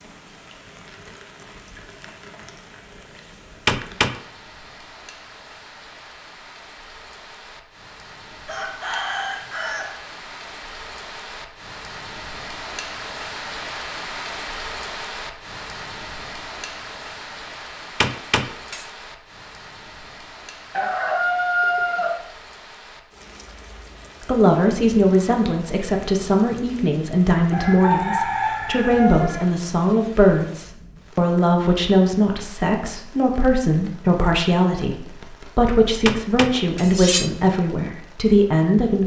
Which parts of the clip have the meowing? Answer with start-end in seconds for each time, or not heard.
3.6-4.2, 18.0-18.9, 36.0-37.3.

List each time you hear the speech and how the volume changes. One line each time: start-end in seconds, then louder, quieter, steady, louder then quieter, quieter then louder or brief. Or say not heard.
24.2-39.0 steady.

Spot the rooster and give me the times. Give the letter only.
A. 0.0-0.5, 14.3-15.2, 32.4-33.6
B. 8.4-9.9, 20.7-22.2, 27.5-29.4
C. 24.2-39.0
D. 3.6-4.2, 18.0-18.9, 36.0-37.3
B.